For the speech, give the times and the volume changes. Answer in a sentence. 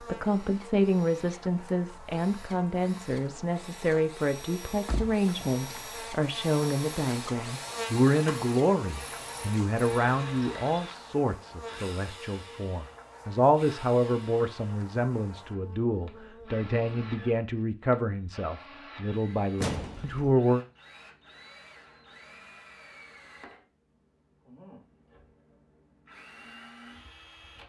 The speech can be heard from 0.0 to 20.6 s, at a steady volume.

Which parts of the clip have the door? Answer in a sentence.
The door can be heard from 4.7 to 5.8 s and from 19.6 to 20.4 s.